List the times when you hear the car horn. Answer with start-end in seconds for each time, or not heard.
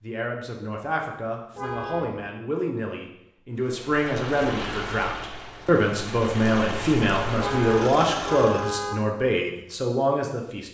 1.6-2.2, 7.3-8.9.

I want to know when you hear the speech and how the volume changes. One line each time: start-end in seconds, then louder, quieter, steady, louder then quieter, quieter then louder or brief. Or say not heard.
0.0-10.6 louder.